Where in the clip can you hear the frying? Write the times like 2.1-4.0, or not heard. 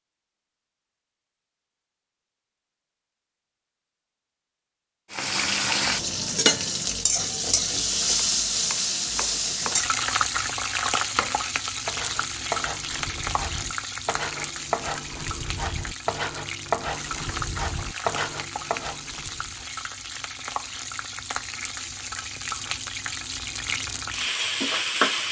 5.1-25.2.